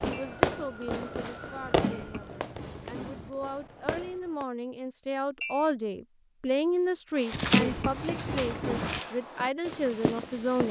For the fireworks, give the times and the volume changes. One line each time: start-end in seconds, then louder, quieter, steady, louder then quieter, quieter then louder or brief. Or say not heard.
0.0-4.5 quieter then louder.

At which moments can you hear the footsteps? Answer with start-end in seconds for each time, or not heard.
7.2-10.6.